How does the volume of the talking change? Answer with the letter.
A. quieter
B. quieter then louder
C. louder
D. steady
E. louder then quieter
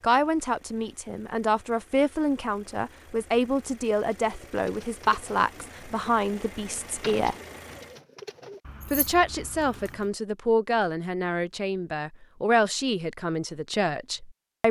D.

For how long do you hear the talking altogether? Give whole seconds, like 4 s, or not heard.
13 s.